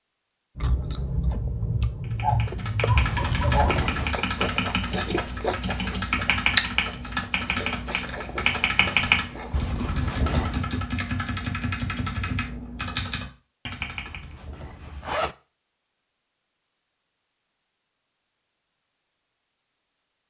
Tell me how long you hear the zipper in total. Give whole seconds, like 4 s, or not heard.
4 s.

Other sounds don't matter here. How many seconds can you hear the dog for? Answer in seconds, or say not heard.
2 s.